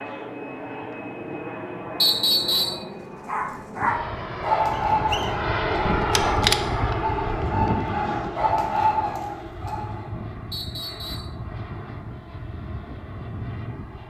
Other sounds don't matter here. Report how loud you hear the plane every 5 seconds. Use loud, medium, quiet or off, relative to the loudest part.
medium, loud, medium.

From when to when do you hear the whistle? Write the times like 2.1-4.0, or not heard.
2.0-2.9, 4.7-5.3, 10.5-11.3.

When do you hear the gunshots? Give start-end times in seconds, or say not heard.
5.8-7.5.